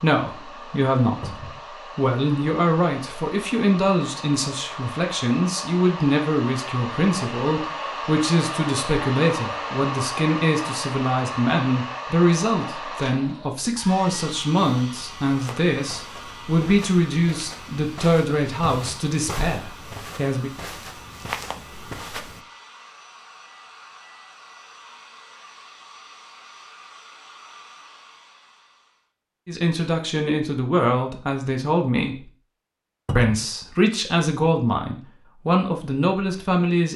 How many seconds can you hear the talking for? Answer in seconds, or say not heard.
27 s.